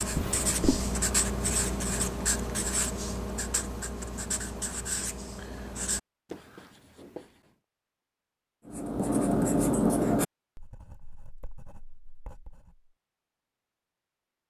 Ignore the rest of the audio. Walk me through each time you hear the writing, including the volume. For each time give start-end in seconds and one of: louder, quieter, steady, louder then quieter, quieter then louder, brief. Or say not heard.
0.0-7.3 quieter
8.7-12.9 quieter.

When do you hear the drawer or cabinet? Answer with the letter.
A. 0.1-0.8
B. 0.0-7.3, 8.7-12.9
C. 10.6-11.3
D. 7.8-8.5
A.